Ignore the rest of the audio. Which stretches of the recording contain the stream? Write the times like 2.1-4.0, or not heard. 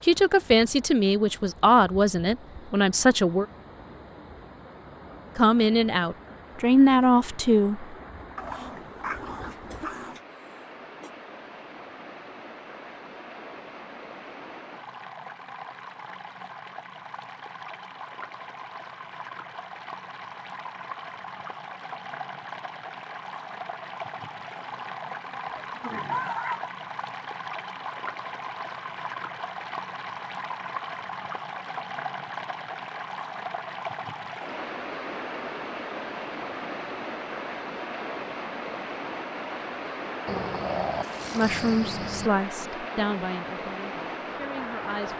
0.0-45.1.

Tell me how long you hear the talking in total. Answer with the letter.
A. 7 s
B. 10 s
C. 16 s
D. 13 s
B.